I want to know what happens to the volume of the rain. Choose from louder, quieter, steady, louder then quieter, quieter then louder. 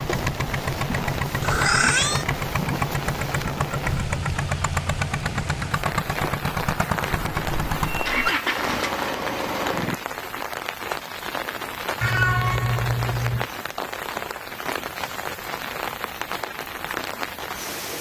steady.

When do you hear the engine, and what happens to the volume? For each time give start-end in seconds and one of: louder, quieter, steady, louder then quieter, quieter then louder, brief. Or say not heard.
0.0-10.0 steady.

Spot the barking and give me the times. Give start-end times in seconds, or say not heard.
not heard.